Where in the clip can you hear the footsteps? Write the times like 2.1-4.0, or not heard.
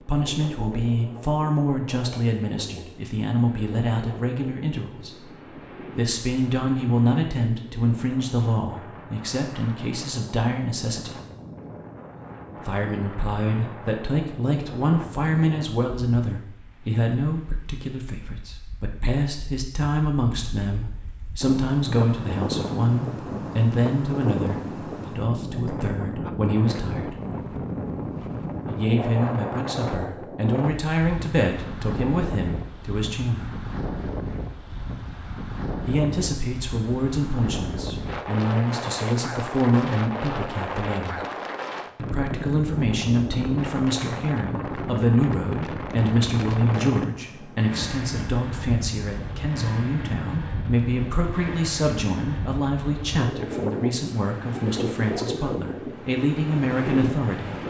not heard.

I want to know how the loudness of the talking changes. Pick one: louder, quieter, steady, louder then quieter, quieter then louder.
steady.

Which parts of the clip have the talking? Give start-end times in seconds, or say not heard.
0.0-5.3, 6.0-11.2, 12.7-27.1, 28.7-33.5, 35.9-41.2, 42.0-57.6.